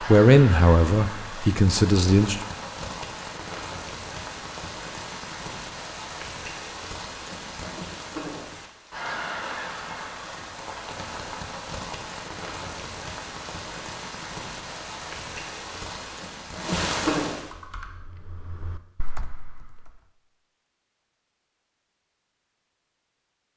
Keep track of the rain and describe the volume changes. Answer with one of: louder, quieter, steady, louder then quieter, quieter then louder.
steady.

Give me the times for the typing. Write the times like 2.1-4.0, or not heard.
17.4-20.1.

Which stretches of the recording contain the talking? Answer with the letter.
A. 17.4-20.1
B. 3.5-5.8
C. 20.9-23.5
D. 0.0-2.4
D.